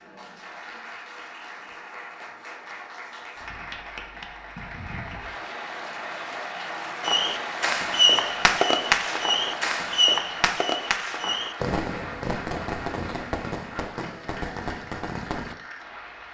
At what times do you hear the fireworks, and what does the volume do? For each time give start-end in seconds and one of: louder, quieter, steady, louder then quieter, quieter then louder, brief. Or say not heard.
7.0-15.6 quieter.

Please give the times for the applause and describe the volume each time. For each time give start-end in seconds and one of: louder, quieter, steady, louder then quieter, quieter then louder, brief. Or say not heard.
0.0-16.3 louder then quieter.